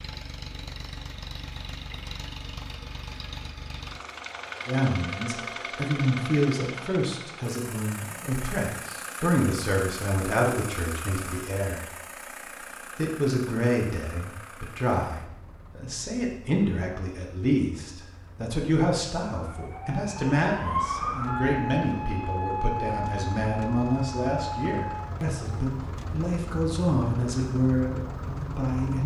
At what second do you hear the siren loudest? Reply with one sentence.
The volume of the siren peaks at 21 seconds.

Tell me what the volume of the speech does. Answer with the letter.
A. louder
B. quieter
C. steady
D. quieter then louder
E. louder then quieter
C.